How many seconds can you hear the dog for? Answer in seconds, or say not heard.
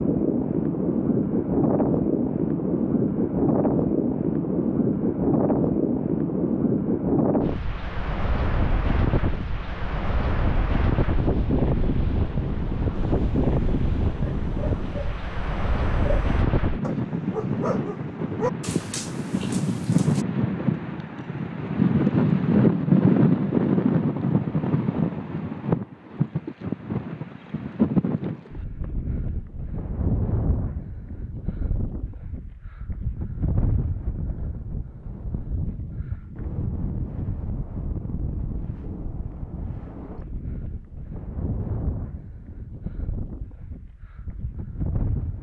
7 s.